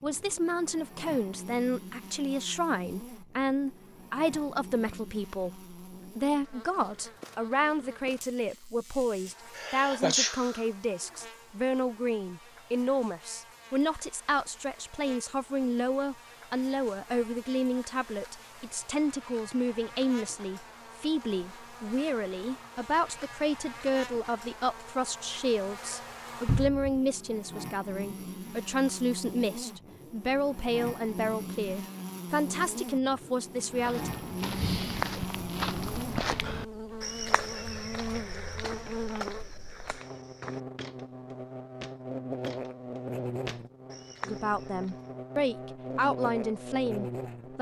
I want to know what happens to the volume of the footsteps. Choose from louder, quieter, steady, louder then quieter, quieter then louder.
quieter.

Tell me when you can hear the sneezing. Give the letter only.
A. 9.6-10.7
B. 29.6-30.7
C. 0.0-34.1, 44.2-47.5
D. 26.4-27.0
A.